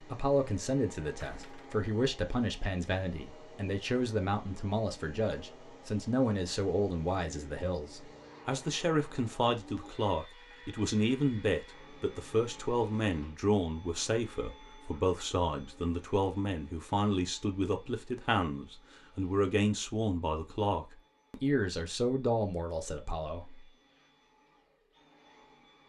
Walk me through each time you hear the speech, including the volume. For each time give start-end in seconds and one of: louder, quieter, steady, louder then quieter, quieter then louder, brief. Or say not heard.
0.0-23.6 steady.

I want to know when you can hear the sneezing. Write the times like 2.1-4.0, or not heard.
not heard.